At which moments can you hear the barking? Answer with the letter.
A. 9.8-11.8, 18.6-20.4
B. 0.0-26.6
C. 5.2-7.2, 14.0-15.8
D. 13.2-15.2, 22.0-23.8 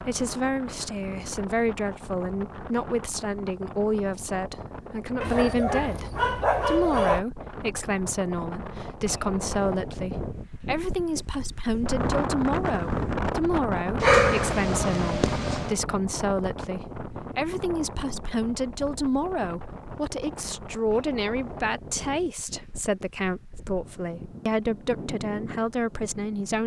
C.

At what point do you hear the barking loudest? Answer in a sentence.
The loudest moment of the barking is at 14 seconds.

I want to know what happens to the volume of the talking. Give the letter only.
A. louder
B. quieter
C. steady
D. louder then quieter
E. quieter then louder
C.